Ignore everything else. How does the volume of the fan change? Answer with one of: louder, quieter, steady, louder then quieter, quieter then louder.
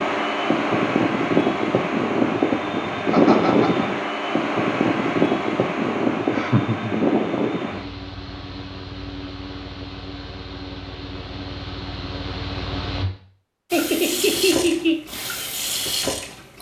quieter.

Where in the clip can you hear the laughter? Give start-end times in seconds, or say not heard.
3.0-3.9, 6.3-7.0, 13.7-15.0.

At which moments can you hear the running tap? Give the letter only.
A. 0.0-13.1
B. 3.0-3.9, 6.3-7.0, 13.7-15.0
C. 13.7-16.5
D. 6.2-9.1
C.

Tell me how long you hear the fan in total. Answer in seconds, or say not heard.
13 s.